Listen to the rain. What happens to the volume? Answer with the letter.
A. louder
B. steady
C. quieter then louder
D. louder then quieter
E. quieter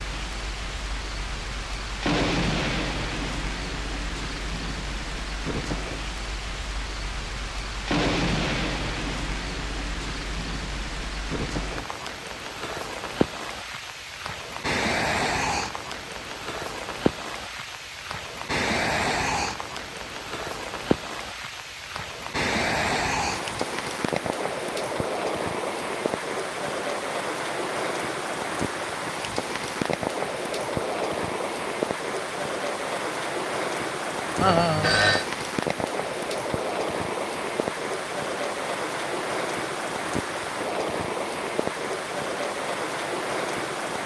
B.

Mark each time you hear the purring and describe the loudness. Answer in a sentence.
You can't hear the purring here.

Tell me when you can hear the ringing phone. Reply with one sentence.
The ringing phone can be heard from 34.4 to 35.2 s.